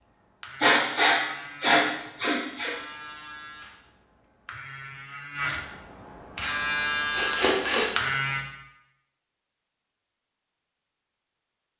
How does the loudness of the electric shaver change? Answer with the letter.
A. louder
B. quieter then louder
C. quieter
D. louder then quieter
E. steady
A.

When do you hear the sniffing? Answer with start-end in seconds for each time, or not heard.
0.6-2.8, 7.1-7.9.